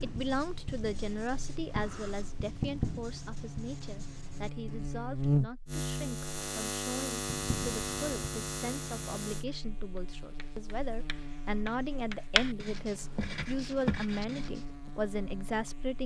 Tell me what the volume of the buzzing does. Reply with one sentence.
The loudness of the buzzing goes up, then down.